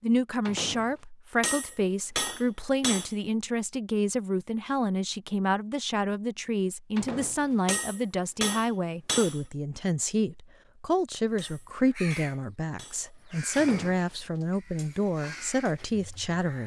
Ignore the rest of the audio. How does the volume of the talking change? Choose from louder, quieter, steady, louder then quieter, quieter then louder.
steady.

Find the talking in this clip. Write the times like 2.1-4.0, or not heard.
0.0-16.6.